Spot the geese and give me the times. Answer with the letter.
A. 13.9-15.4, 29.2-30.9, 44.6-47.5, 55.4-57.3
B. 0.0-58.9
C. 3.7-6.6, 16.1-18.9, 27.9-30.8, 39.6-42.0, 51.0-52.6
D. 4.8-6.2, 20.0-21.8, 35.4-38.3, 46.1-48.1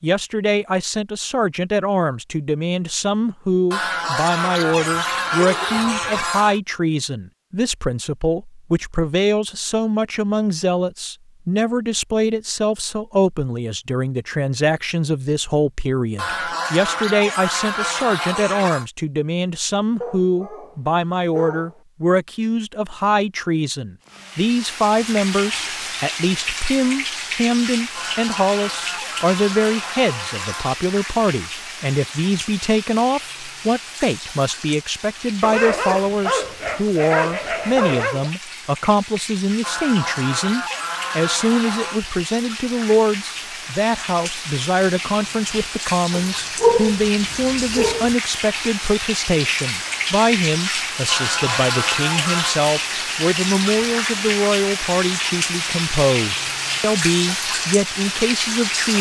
C.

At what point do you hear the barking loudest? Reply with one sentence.
The volume of the barking peaks at 47 seconds.